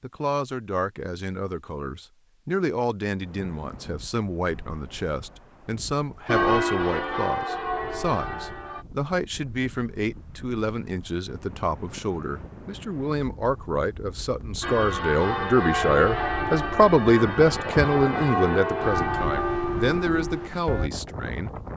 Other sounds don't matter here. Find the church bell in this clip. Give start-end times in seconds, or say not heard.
6.2-8.8, 14.6-20.9.